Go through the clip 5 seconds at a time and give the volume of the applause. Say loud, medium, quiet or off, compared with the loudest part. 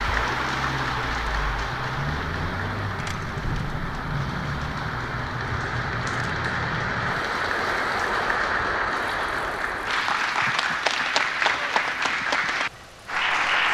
medium, loud, loud.